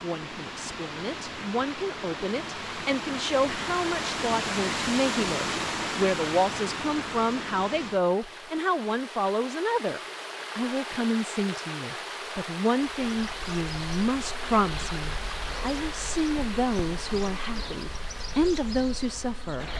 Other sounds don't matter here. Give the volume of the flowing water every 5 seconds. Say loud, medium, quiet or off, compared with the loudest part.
loud, loud, loud, medium.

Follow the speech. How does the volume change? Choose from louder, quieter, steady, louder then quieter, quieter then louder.
steady.